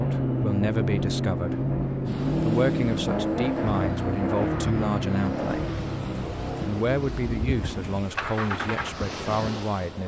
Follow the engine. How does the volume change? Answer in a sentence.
The loudness of the engine goes down.